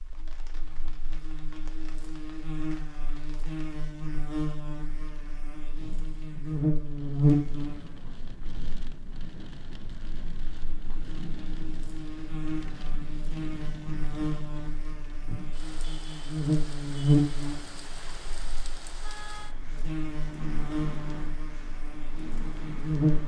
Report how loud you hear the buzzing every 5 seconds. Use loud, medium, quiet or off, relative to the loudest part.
medium, loud, medium, loud, loud.